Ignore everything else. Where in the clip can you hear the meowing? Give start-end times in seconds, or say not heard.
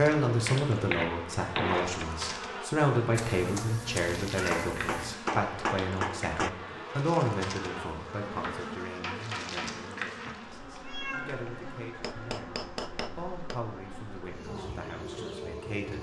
3.1-5.2, 10.8-11.4.